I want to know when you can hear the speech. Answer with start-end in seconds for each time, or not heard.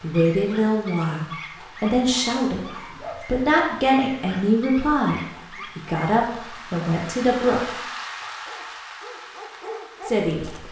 0.0-7.7, 10.0-10.6.